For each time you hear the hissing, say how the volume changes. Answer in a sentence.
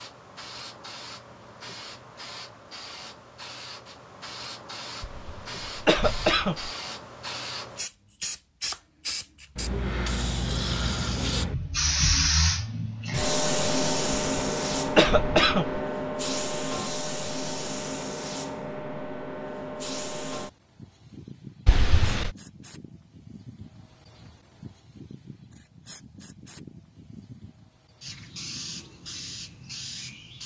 The hissing can be heard from 0.0 to 30.4 s, getting louder then quieter.